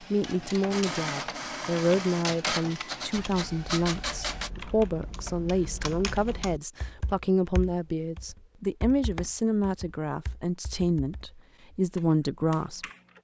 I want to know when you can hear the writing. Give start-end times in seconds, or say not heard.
not heard.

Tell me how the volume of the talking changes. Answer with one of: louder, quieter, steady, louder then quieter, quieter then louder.
steady.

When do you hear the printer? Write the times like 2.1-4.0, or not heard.
0.0-4.5.